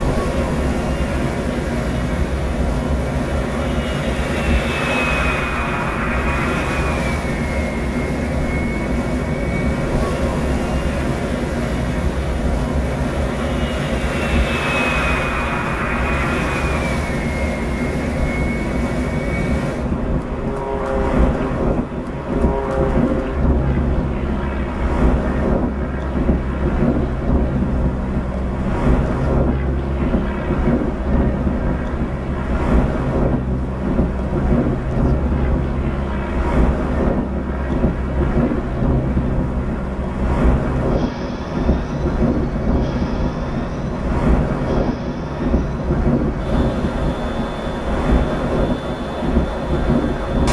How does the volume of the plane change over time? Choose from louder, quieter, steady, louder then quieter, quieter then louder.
steady.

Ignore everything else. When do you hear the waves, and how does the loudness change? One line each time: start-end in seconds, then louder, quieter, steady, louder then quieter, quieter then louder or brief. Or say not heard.
0.0-50.4 steady.